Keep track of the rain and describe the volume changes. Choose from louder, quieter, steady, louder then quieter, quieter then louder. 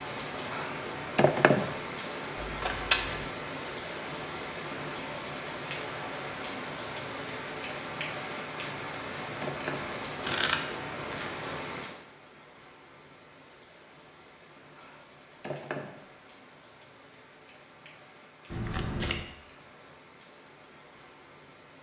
quieter.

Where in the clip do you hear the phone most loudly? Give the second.
1 s.